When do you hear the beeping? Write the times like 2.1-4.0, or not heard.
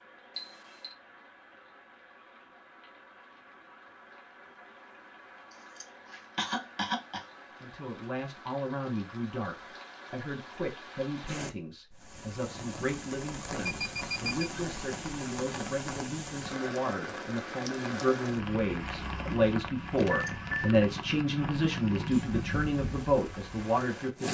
0.3-0.9, 13.6-14.5, 20.1-20.8.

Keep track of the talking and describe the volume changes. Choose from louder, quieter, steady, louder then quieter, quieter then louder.
louder.